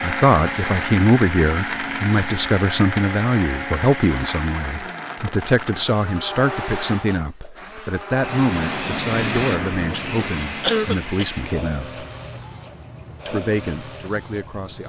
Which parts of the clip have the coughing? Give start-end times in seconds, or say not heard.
10.6-11.2.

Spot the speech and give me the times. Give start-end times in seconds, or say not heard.
0.0-12.0, 13.2-14.8.